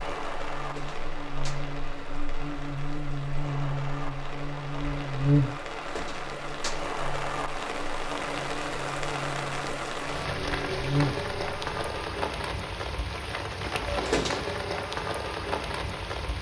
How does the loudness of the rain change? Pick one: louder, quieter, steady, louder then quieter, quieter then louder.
louder.